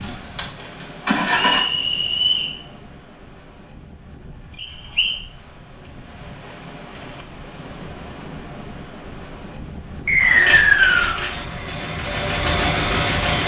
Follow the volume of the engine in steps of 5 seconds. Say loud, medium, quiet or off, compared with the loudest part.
loud, off, loud.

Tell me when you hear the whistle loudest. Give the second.
11 s.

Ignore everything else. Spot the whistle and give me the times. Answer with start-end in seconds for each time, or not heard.
1.5-2.5, 4.6-5.2, 10.1-11.2.